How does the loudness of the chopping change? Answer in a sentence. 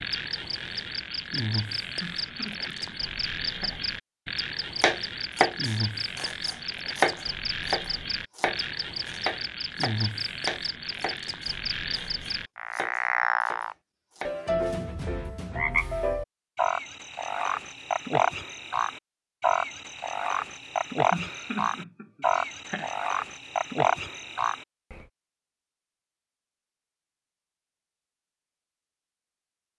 The volume of the chopping goes down.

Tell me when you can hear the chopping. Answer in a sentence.
The chopping can be heard from 4.8 to 14.4 s.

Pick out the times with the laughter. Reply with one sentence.
You can hear the laughter from 1.9 to 3.9 s and from 21.1 to 22.9 s.